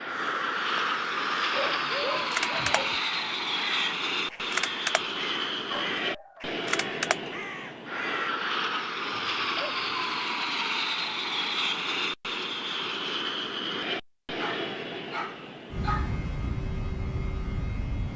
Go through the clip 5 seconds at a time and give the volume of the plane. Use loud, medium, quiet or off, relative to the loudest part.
loud, loud, loud, medium.